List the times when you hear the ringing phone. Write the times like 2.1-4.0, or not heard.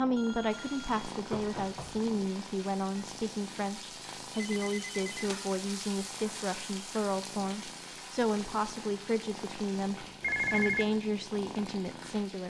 0.1-2.0, 4.3-5.3, 10.2-10.8.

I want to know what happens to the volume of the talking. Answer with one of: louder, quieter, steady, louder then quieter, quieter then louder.
steady.